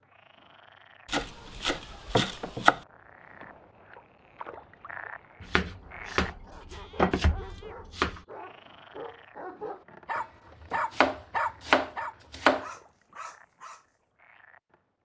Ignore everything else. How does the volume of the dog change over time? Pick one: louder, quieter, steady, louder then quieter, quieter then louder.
louder then quieter.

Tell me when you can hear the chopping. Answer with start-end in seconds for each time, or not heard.
1.1-2.8, 5.4-8.2, 10.9-12.7.